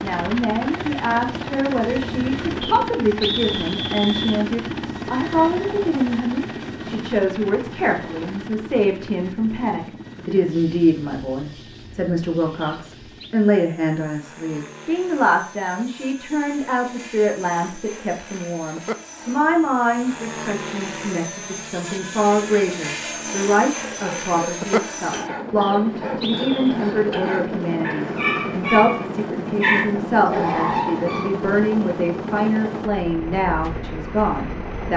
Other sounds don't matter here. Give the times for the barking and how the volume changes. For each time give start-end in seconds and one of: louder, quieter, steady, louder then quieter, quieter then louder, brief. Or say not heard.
24.0-31.4 louder.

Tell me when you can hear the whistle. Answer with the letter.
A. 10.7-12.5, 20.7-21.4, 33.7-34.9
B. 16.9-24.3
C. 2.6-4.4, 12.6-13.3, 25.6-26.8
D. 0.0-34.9
C.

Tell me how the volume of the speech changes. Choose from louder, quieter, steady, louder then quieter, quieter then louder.
steady.